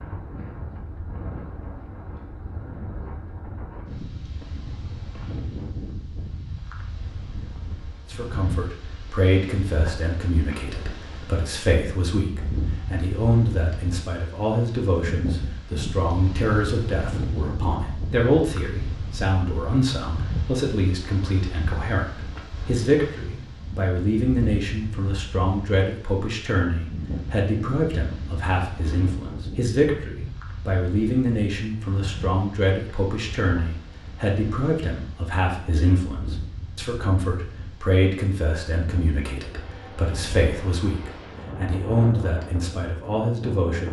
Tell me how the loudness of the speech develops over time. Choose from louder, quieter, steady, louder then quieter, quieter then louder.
steady.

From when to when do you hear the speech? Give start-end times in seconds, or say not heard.
8.1-43.8.